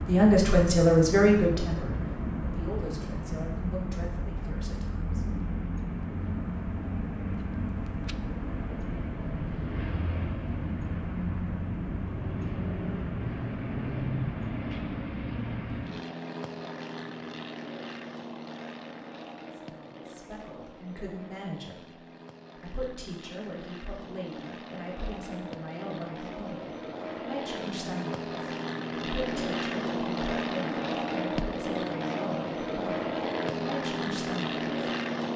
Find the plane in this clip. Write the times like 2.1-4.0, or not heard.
0.0-35.3.